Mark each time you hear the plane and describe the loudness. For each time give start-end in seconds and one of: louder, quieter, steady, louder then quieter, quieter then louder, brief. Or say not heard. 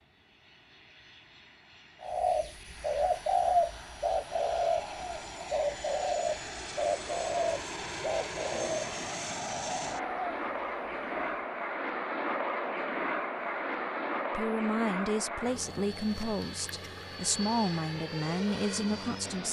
0.0-19.4 louder then quieter.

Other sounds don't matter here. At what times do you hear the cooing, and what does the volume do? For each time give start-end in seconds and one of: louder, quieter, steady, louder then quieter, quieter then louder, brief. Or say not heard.
2.0-11.5 quieter.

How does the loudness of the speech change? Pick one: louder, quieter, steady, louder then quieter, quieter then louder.
quieter then louder.